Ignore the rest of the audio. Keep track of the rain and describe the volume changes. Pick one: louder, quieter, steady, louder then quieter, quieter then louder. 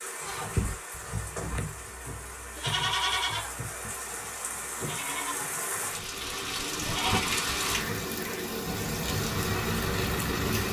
louder.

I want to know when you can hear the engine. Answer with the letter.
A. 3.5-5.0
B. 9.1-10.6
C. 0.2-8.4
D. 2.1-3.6
B.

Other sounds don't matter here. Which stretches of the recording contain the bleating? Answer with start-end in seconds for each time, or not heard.
0.2-8.4.